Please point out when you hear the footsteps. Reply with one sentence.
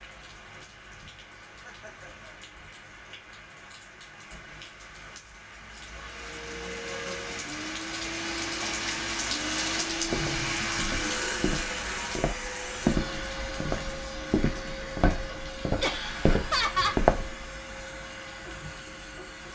You can hear the footsteps from 9.9 to 17.4 s.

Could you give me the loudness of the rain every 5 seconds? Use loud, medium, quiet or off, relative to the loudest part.
quiet, loud, loud, medium.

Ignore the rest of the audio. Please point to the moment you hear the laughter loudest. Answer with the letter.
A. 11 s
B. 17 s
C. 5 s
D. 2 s
B.